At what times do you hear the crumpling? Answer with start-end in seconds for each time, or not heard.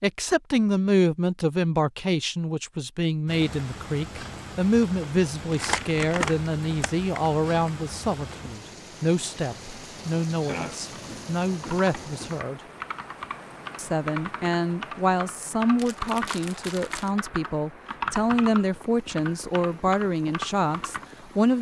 5.5-7.7, 15.8-17.1.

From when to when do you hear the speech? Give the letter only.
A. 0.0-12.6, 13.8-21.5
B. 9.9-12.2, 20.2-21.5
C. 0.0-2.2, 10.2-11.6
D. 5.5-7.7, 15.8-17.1
A.